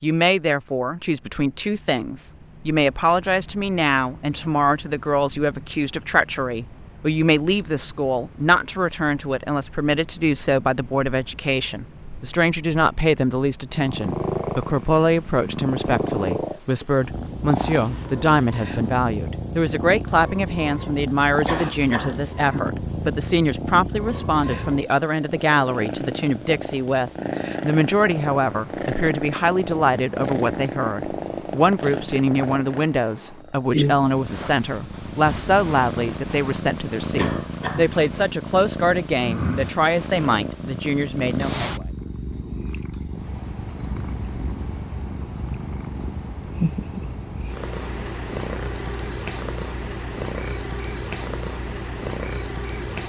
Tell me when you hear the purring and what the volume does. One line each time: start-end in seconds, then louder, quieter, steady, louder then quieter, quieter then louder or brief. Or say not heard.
13.7-53.0 steady.